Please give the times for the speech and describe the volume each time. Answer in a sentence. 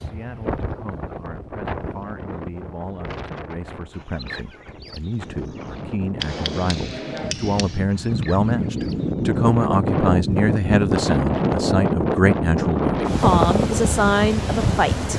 You can hear the speech from 0.0 to 15.1 s, getting louder.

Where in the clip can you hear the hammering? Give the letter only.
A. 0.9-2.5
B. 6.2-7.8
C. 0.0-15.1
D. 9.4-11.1
B.